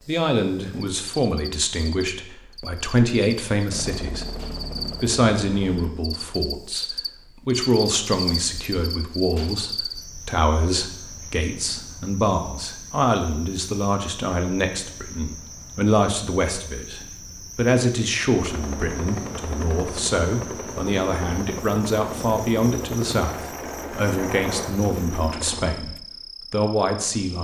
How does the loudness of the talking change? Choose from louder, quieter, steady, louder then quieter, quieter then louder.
steady.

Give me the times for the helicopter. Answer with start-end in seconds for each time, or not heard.
3.7-5.9, 18.4-25.6.